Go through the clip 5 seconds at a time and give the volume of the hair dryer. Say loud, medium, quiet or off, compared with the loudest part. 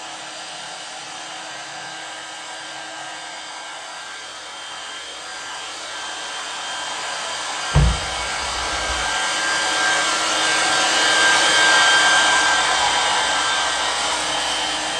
quiet, medium, loud.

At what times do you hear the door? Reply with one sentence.
You can hear the door from 7.7 to 9.1 s.